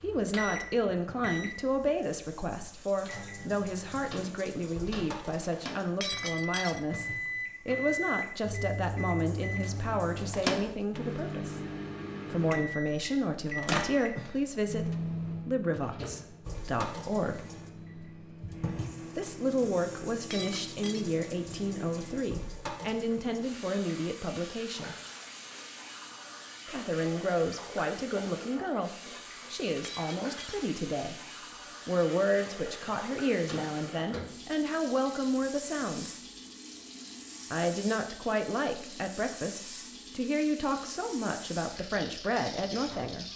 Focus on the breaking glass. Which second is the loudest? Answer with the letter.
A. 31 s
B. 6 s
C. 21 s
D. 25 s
B.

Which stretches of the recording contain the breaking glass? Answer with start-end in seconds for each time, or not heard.
6.0-6.8, 20.3-21.1, 29.8-30.6.